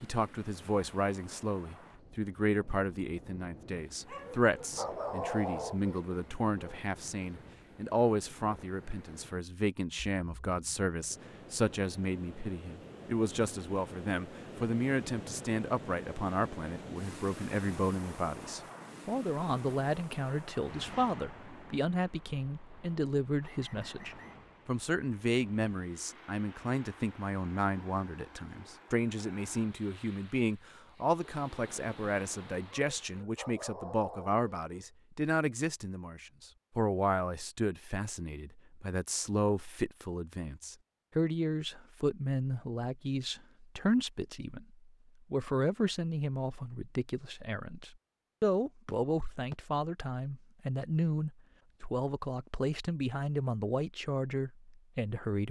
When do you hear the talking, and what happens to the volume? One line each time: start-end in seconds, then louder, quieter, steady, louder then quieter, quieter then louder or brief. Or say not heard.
0.0-55.4 steady.